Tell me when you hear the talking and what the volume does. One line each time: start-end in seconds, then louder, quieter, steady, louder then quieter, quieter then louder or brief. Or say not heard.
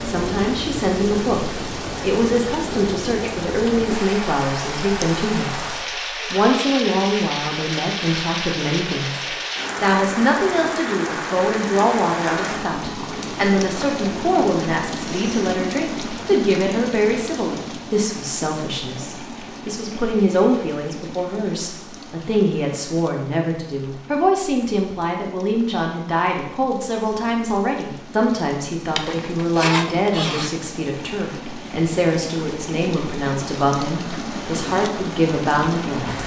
0.0-36.2 steady.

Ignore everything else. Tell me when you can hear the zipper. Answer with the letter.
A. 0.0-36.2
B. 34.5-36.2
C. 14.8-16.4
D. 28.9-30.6
D.